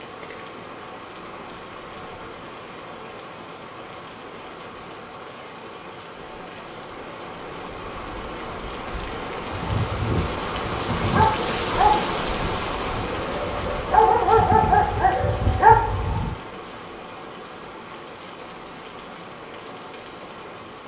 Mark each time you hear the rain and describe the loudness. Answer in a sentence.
You can hear the rain from 0.0 to 20.8 s, getting louder then quieter.